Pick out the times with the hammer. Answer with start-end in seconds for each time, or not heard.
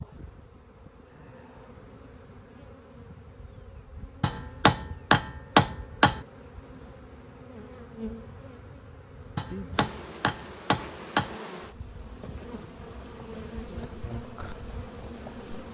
4.2-6.2, 9.3-11.3.